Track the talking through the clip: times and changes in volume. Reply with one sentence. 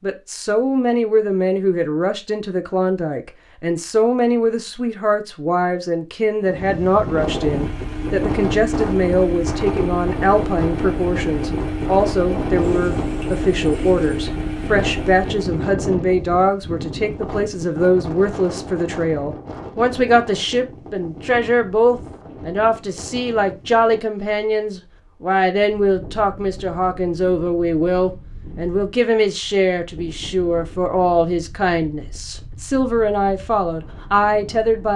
The talking can be heard from 0.0 to 34.9 s, at a steady volume.